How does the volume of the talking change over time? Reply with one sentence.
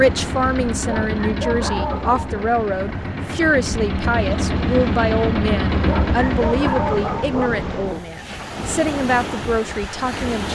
The volume of the talking stays about the same.